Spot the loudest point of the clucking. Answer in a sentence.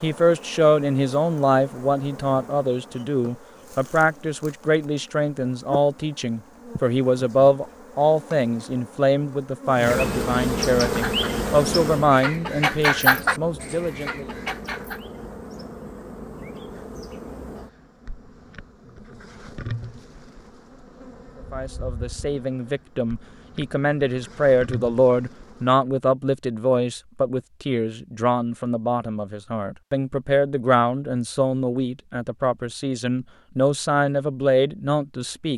The loudest moment of the clucking is at 13 seconds.